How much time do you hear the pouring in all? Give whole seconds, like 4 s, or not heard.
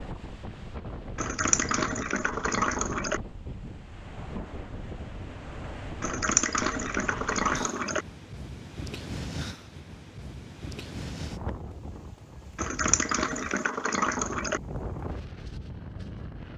6 s.